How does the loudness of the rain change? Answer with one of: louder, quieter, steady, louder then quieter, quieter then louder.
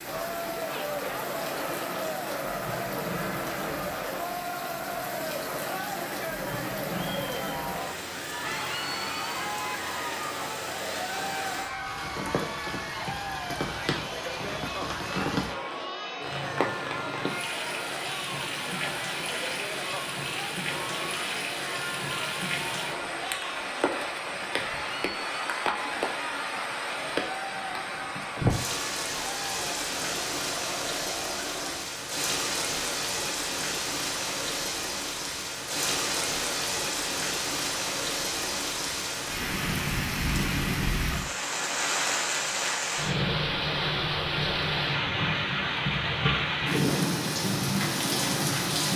louder.